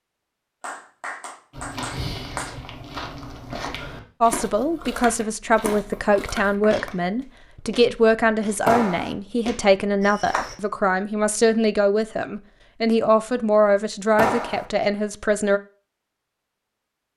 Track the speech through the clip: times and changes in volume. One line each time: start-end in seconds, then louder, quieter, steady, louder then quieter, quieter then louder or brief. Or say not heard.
4.2-15.6 steady.